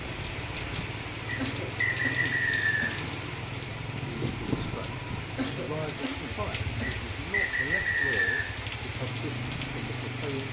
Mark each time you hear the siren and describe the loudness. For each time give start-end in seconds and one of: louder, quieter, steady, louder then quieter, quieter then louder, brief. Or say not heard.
not heard.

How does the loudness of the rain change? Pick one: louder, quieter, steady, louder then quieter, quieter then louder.
steady.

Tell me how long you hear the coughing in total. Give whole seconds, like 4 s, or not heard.
3 s.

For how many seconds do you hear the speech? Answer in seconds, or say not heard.
6 s.